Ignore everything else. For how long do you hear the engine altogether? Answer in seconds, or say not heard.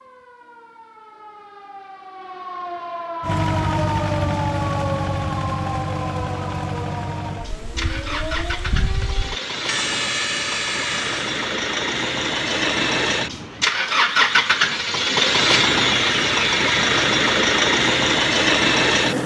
16 s.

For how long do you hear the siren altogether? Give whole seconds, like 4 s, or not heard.
11 s.